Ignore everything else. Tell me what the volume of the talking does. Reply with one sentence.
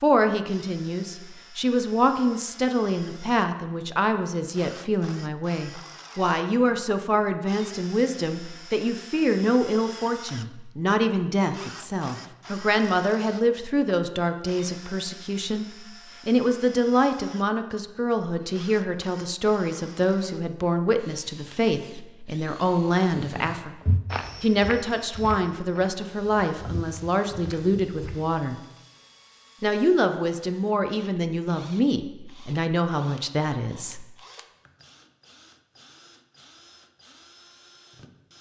The volume of the talking stays about the same.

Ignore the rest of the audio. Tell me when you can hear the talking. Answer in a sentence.
The talking can be heard from 0.0 to 23.8 s, from 24.4 to 28.6 s and from 29.6 to 34.0 s.